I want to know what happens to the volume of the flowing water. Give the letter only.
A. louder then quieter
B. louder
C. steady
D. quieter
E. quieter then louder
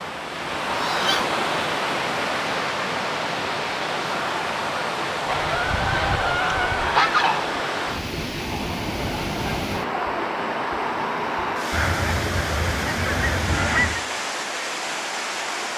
C.